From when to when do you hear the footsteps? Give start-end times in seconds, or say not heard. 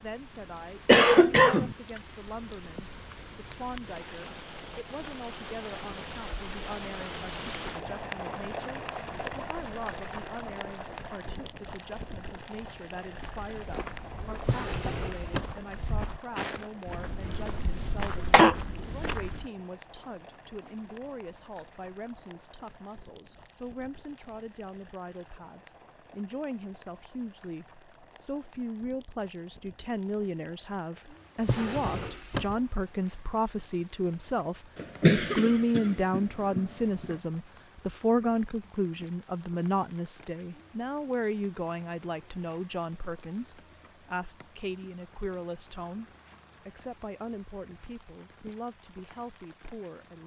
13.1-19.5.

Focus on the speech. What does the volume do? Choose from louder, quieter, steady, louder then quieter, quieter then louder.
louder then quieter.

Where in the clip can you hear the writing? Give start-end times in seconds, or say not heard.
not heard.